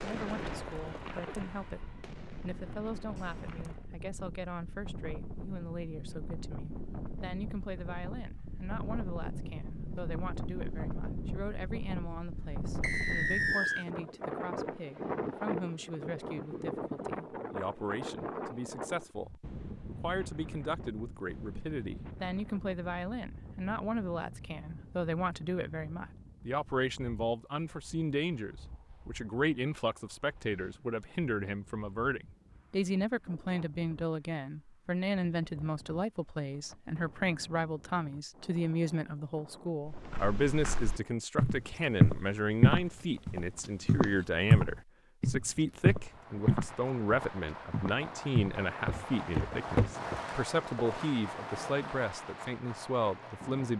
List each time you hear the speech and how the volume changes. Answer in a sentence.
You can hear the speech from 0.0 to 53.7 s, getting louder.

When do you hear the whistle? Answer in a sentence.
You can hear the whistle from 12.8 to 13.8 s.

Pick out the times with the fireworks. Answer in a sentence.
The fireworks can be heard from 0.0 to 3.9 s and from 46.0 to 53.7 s.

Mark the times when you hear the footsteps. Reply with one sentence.
You can hear the footsteps from 39.9 to 50.2 s.